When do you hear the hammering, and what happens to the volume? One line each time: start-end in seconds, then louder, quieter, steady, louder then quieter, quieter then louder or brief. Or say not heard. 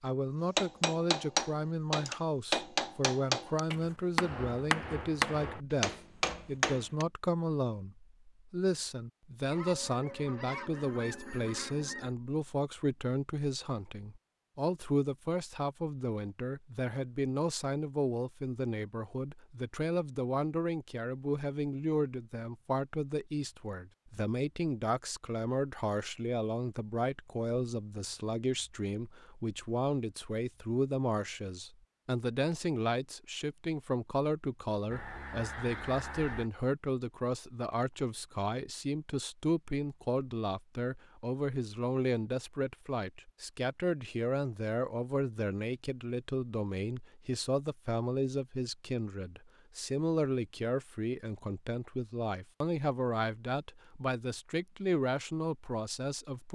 0.6-7.0 steady.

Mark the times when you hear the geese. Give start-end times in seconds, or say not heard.
9.5-12.2, 34.9-36.5.